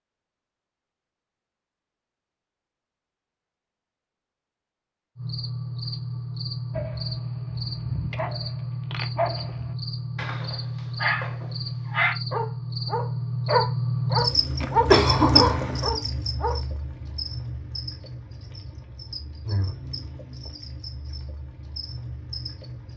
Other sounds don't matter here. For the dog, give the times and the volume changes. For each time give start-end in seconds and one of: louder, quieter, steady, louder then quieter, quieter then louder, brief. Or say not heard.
6.7-16.6 louder.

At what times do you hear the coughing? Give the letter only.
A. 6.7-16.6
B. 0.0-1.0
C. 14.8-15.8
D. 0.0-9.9
C.